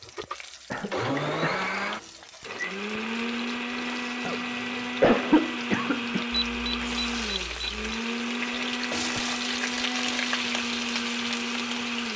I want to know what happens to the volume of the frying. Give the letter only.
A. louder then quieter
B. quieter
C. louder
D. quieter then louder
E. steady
C.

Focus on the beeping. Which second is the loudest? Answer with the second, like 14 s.
7 s.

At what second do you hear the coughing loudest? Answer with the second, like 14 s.
5 s.